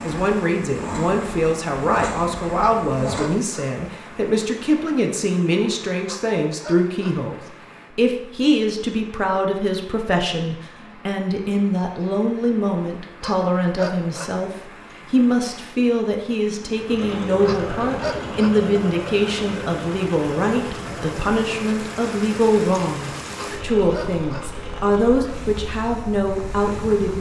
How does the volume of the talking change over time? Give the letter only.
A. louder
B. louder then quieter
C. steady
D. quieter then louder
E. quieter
C.